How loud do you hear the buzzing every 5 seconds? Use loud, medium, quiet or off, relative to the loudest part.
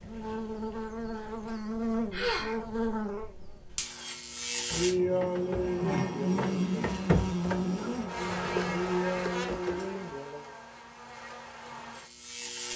loud, loud, medium.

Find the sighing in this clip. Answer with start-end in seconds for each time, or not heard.
2.1-2.5, 4.7-6.8, 8.7-10.6.